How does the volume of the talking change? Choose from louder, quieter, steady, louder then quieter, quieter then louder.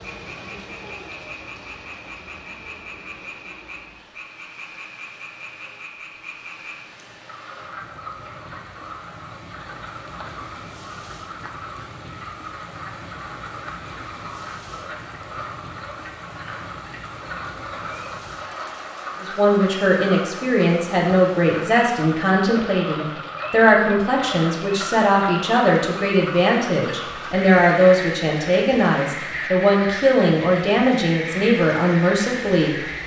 steady.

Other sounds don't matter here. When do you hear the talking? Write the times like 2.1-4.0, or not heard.
19.2-32.8.